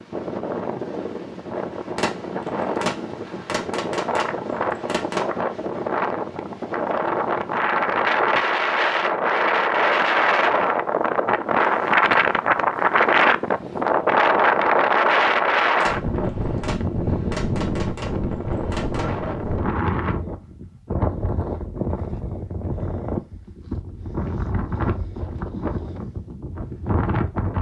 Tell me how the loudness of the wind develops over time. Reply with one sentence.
The volume of the wind goes up, then down.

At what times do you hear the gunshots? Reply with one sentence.
The gunshots can be heard from 1.9 to 5.2 s and from 15.8 to 19.1 s.